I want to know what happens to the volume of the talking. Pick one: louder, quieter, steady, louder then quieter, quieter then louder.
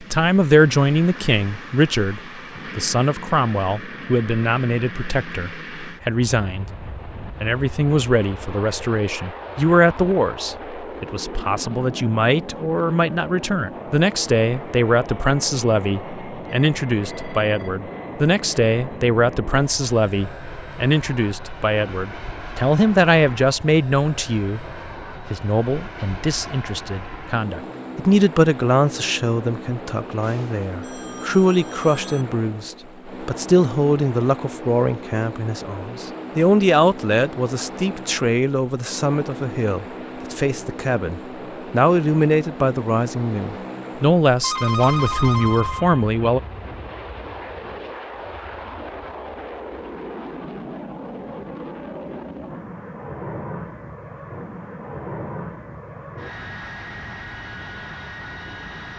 steady.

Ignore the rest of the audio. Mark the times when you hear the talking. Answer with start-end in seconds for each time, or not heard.
0.0-46.4.